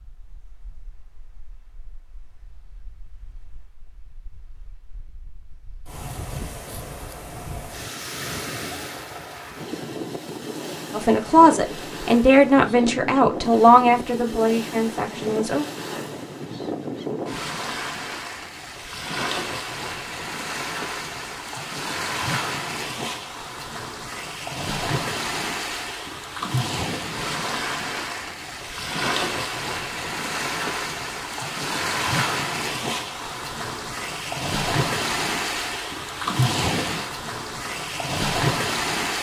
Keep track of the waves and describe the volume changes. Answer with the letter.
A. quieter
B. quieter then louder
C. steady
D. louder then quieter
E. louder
E.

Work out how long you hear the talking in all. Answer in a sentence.
You can hear the talking for 5 seconds altogether.